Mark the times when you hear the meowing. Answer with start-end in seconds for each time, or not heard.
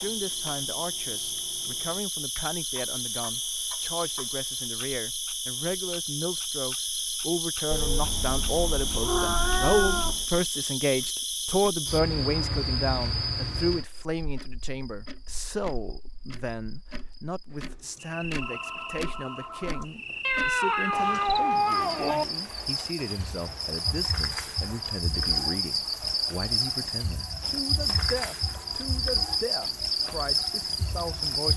7.7-10.2, 20.2-22.2.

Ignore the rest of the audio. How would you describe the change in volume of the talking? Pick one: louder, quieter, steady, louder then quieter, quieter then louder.
louder then quieter.